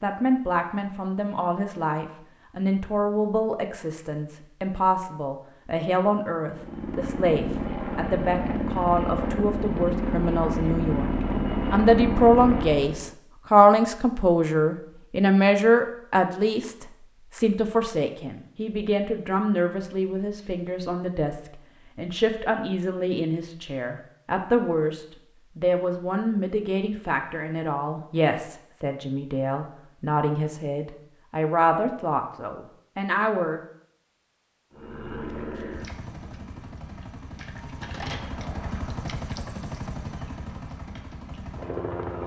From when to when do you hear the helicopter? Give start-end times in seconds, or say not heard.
6.5-13.1, 34.7-42.2.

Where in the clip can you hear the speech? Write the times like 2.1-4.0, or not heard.
0.0-33.6.